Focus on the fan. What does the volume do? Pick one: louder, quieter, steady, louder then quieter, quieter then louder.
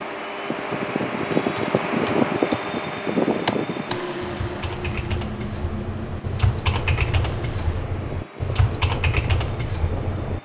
quieter.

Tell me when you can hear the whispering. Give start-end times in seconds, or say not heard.
not heard.